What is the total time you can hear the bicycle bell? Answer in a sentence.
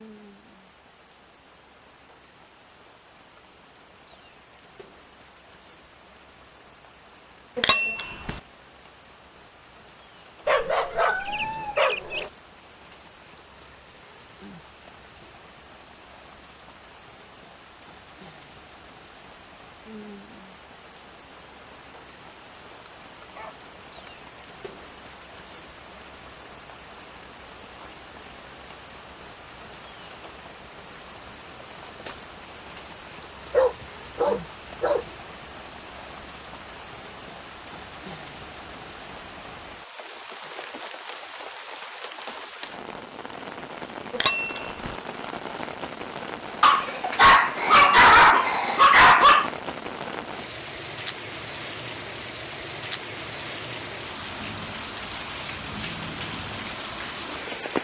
You can hear the bicycle bell for 2 seconds altogether.